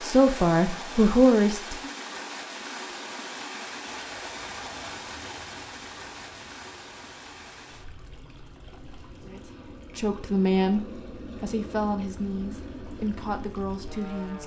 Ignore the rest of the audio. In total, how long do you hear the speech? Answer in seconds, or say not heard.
7 s.